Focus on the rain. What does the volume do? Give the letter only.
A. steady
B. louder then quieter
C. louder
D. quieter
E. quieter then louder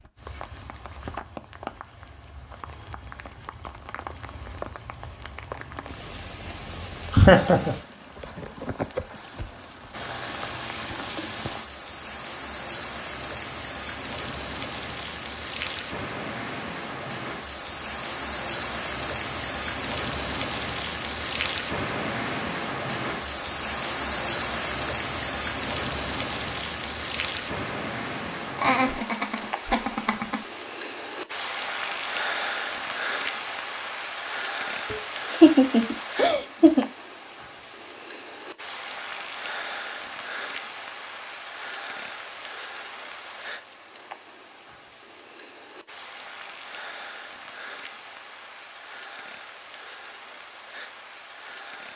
B.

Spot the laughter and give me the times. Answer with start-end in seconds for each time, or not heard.
7.1-7.8, 28.6-30.4, 34.9-36.9.